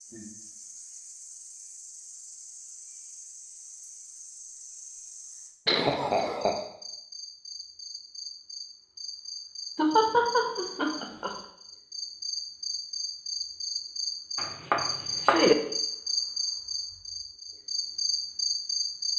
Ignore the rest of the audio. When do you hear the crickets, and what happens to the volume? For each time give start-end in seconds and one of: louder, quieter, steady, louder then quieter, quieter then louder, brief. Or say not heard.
0.0-19.1 louder.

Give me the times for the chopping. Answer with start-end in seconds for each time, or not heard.
14.3-15.6.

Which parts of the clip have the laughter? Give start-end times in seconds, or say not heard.
5.7-6.6, 9.8-11.3.